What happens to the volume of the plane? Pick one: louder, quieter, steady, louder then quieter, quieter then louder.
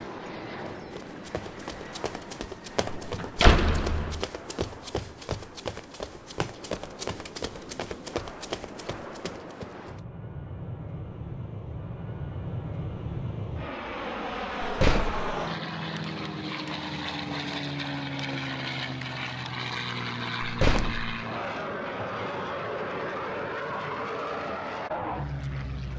louder.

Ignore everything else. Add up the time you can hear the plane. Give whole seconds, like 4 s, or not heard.
26 s.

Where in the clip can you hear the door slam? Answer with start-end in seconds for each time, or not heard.
2.9-4.2, 14.6-15.2, 20.4-21.1.